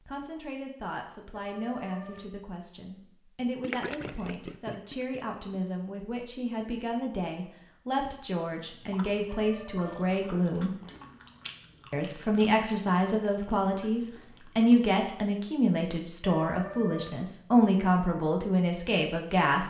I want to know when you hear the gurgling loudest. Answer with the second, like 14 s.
4 s.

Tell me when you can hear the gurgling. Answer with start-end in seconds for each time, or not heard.
3.6-5.6.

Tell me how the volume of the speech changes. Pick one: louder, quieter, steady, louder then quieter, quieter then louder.
louder.